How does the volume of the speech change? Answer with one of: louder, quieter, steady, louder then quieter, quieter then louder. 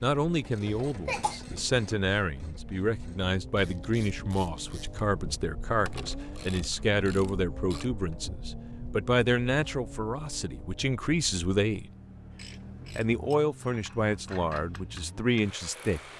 steady.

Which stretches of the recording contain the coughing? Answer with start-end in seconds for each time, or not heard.
0.6-1.4.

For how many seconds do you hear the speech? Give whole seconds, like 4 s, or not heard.
15 s.